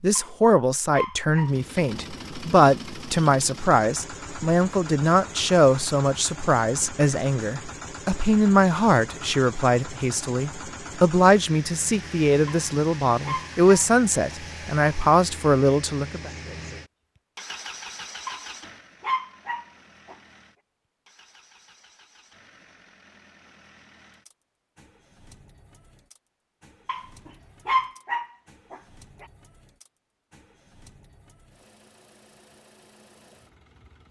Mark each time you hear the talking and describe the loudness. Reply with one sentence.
The talking can be heard from 0.0 to 16.3 s, at a steady volume.